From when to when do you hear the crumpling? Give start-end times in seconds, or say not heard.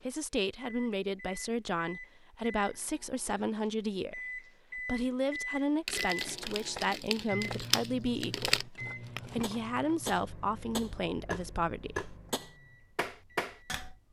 5.8-8.7.